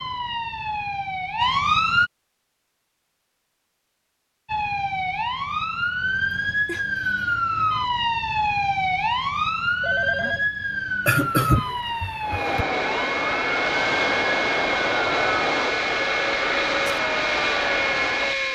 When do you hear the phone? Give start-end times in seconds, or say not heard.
6.7-7.3, 9.8-10.4.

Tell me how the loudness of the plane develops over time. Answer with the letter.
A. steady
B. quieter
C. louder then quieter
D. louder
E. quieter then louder
A.